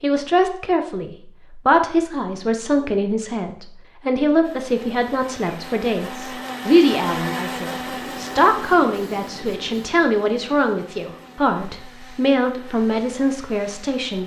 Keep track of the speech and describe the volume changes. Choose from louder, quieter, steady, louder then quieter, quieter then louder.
steady.